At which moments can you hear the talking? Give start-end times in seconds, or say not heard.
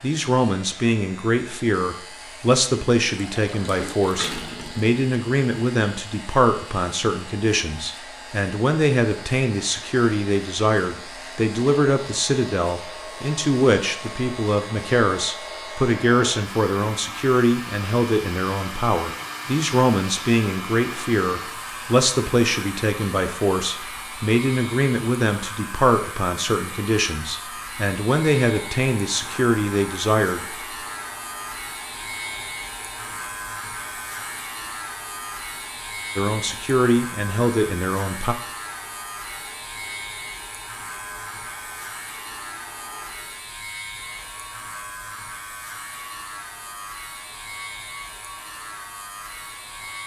0.0-30.4, 36.1-38.4.